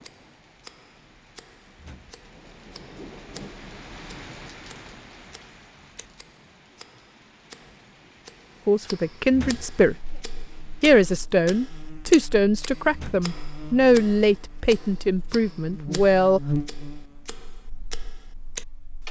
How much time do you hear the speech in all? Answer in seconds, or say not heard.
7 s.